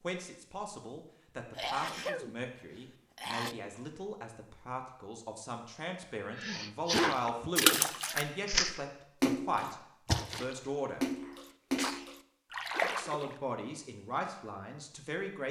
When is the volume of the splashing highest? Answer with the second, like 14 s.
8 s.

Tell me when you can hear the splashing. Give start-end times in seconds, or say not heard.
6.9-13.3.